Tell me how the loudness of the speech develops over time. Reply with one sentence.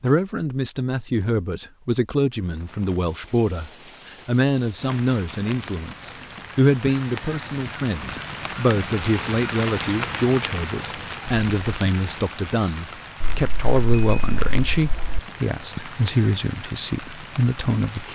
The loudness of the speech stays about the same.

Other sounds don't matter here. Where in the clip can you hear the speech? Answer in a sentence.
You can hear the speech from 0.0 to 18.1 s.